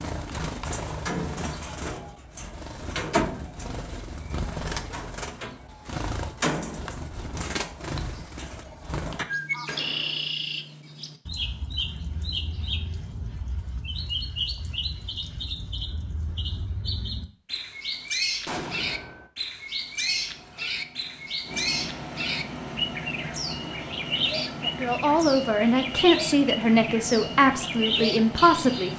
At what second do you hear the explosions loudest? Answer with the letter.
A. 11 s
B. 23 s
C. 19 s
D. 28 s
C.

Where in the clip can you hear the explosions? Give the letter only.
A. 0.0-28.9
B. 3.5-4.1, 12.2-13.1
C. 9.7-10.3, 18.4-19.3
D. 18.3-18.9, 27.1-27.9
C.